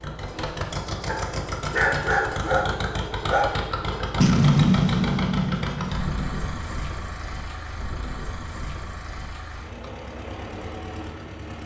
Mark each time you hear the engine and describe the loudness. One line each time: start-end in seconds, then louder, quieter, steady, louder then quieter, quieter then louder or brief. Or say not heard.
0.0-11.6 quieter.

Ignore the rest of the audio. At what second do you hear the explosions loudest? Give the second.
5 s.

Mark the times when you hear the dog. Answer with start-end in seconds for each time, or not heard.
1.1-3.5.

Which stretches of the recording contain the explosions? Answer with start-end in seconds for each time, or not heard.
4.2-6.5.